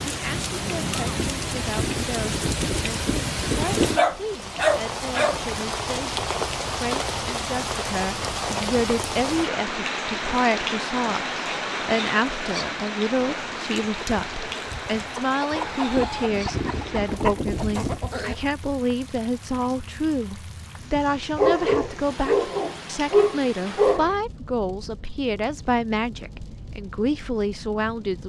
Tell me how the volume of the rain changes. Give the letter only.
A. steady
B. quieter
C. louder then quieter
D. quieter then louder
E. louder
B.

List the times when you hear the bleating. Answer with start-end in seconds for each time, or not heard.
1.1-4.0, 15.9-18.0.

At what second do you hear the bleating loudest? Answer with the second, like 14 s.
4 s.